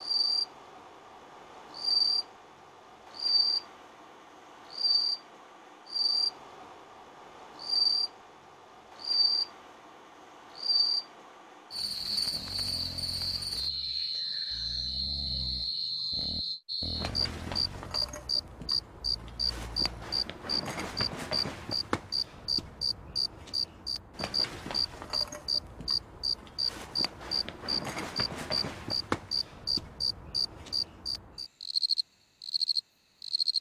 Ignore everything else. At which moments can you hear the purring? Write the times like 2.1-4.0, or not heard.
not heard.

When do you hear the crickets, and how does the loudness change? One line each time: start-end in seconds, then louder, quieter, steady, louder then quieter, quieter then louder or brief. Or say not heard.
0.0-33.5 steady.